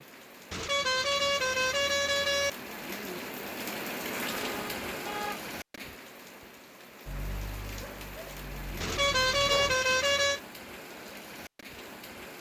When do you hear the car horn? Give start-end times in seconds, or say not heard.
0.5-2.5, 4.5-5.5, 8.8-10.4.